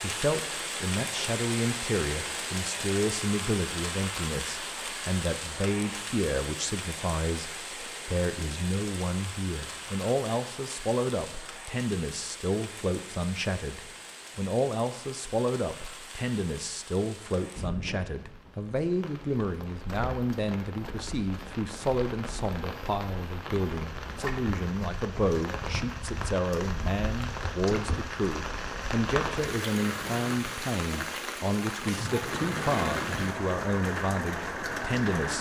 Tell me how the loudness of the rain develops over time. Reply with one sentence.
The loudness of the rain goes down, then up.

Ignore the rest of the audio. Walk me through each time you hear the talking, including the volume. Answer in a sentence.
The talking can be heard from 0.0 to 35.3 s, at a steady volume.